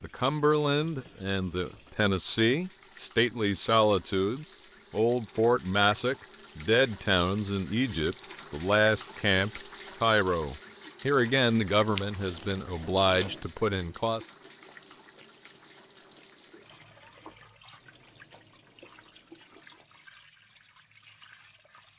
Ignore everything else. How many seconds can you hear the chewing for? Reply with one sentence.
You can hear the chewing for 8 seconds altogether.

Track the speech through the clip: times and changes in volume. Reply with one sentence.
You can hear the speech from 0.0 to 14.2 s, at a steady volume.